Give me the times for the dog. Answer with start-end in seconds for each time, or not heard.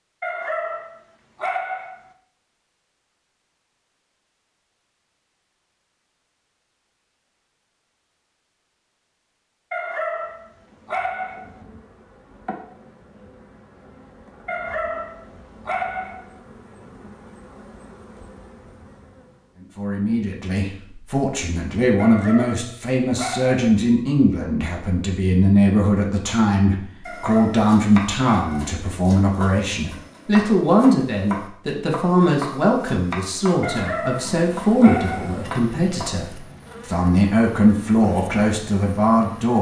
0.2-2.0, 9.7-11.6, 14.4-16.3, 21.9-23.6, 27.1-28.8, 33.6-35.5.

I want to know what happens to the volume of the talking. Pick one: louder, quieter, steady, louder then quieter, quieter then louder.
steady.